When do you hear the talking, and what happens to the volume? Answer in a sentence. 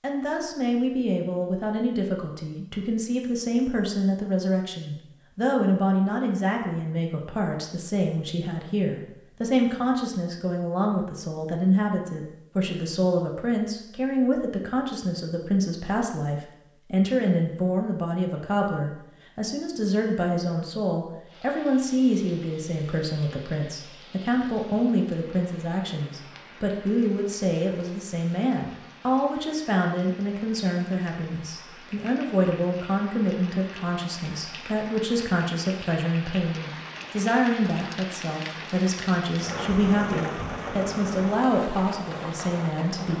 The talking can be heard from 0.0 to 43.1 s, at a steady volume.